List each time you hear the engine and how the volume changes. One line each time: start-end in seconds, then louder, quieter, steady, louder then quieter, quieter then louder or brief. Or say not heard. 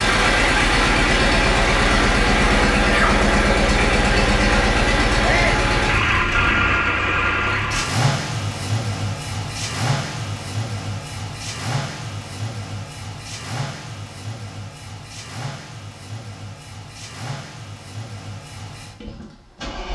0.0-19.9 quieter.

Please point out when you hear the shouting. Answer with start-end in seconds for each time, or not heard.
5.2-5.7.